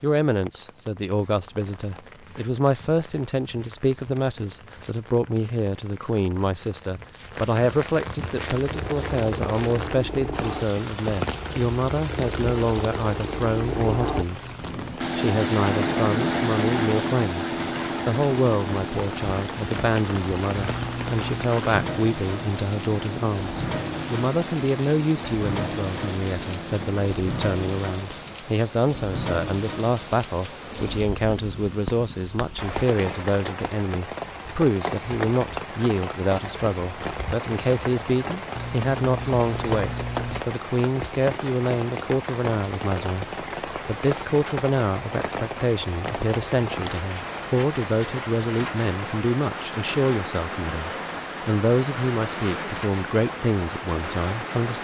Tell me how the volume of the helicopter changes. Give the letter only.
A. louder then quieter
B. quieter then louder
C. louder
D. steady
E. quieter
A.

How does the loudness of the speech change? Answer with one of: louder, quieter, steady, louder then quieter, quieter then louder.
steady.